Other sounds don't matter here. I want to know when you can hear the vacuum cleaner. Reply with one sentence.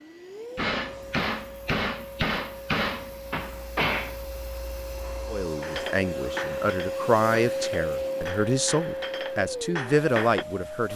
The vacuum cleaner can be heard from 0.0 to 10.9 s.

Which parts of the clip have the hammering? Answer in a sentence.
The hammering can be heard from 0.6 to 10.4 s.